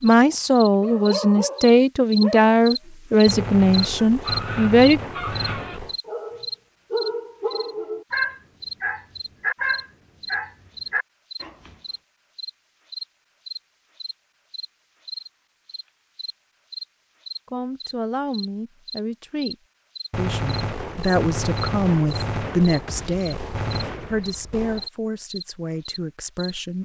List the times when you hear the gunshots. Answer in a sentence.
The gunshots can be heard from 3.2 to 6.0 s and from 20.1 to 24.9 s.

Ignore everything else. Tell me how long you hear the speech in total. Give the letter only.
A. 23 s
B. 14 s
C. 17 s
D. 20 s
B.